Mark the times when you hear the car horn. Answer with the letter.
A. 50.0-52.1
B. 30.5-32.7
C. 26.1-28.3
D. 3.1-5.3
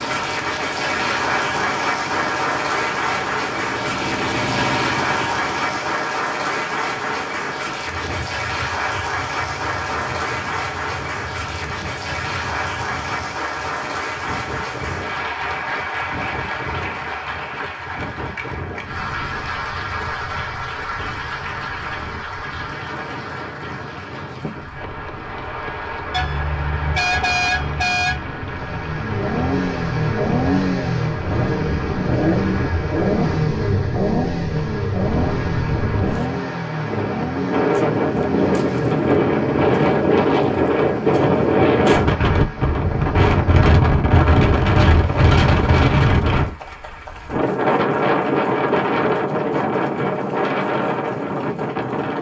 C.